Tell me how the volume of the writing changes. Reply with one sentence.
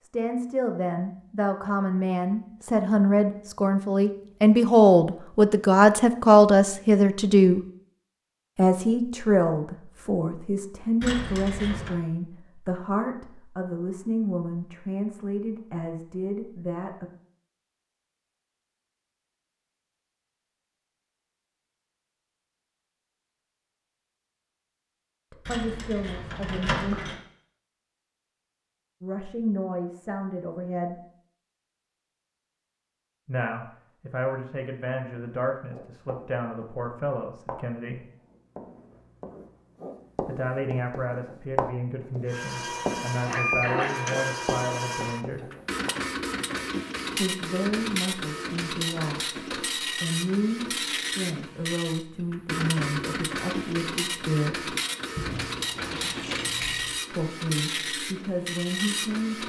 The volume of the writing goes up, then down.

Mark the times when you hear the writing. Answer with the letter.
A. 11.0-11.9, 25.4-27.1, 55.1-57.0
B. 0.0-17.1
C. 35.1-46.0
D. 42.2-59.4
C.